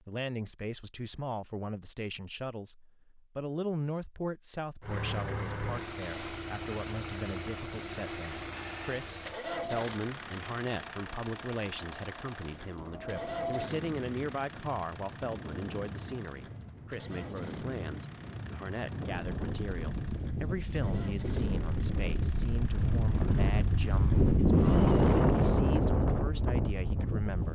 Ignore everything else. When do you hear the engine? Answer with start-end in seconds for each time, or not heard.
4.8-25.6.